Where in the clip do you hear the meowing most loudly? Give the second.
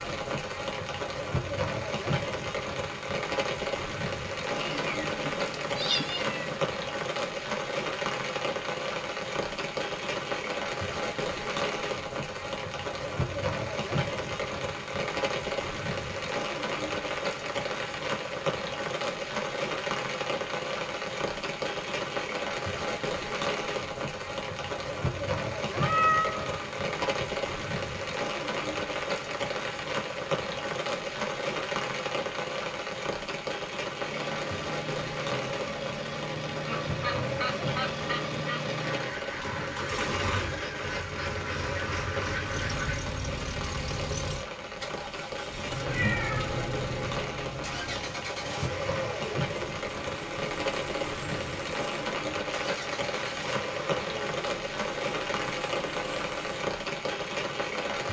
26 s.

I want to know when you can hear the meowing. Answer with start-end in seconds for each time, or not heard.
4.5-6.6, 25.7-27.2, 45.9-48.1.